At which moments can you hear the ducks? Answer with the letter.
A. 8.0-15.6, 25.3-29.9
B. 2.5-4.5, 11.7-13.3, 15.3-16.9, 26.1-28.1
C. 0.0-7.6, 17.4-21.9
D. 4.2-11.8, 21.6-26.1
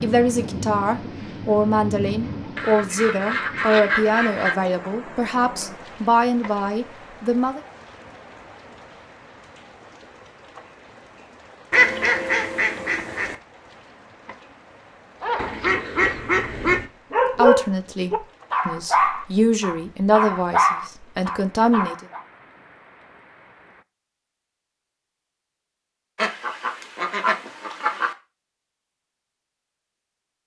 B.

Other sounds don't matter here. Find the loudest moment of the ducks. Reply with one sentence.
The volume of the ducks peaks at 12 seconds.